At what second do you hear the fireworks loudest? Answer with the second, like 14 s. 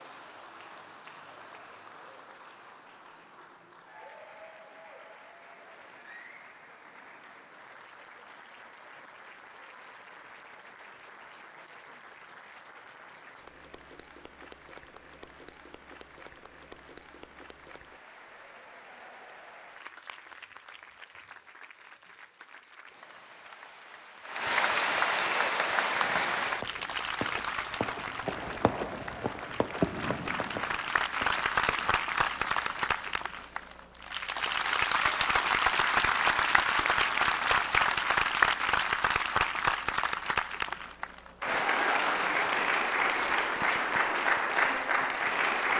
30 s.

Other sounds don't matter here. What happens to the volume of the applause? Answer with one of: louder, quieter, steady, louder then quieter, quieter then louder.
louder.